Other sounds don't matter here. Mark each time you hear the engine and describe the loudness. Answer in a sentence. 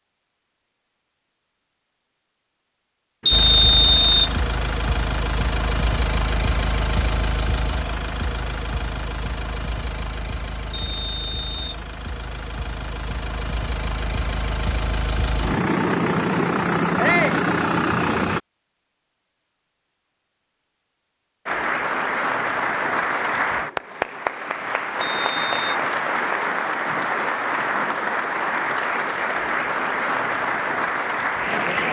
The engine can be heard from 3.3 to 18.4 s, getting quieter then louder.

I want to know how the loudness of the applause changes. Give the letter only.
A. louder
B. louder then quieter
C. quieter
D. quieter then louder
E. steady
E.